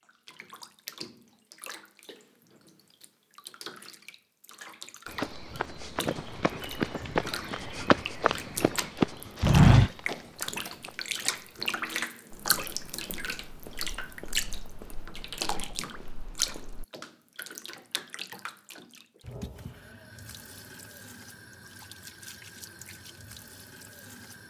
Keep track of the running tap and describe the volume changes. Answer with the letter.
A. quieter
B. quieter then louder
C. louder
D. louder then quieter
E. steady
D.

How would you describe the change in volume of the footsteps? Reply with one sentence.
The volume of the footsteps goes up, then down.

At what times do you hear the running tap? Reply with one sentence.
The running tap can be heard from 0.0 to 24.4 s.